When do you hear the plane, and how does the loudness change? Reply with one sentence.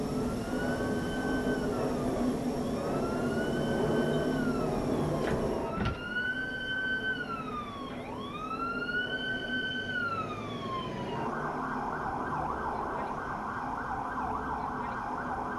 The plane can be heard from 0.0 to 15.5 s, getting quieter.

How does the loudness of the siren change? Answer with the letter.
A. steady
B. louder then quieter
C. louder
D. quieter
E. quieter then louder
C.